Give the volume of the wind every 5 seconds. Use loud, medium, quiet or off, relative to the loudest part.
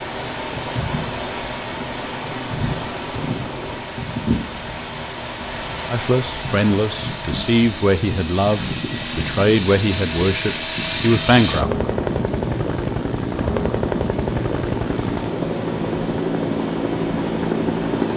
loud, loud, medium, medium.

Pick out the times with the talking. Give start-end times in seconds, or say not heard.
5.9-11.7.